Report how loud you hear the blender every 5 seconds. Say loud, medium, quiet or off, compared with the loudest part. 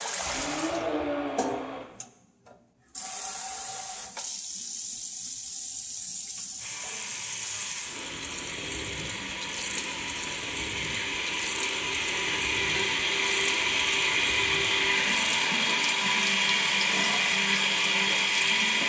medium, quiet, loud, loud.